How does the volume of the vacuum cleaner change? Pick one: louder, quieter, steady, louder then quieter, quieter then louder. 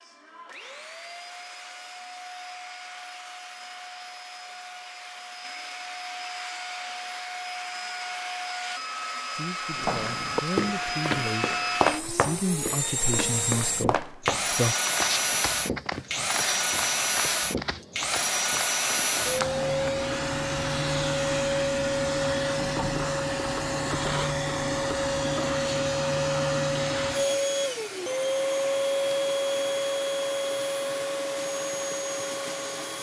louder.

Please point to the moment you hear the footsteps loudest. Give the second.
12 s.